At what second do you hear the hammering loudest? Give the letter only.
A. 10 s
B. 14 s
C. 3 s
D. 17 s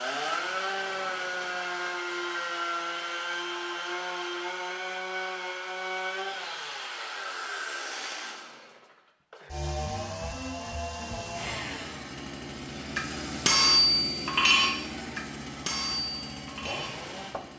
B.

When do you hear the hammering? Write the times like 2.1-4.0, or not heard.
12.9-17.5.